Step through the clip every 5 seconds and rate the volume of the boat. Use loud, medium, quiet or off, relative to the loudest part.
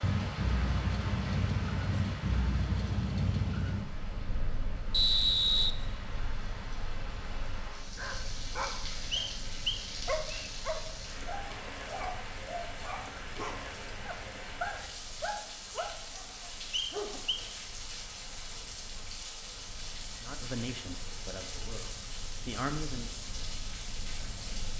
loud, quiet, quiet, quiet, quiet.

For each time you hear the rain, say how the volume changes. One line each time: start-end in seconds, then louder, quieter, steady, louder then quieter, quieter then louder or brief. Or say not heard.
0.0-24.7 steady.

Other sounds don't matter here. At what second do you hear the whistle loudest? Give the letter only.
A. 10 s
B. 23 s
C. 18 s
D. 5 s
D.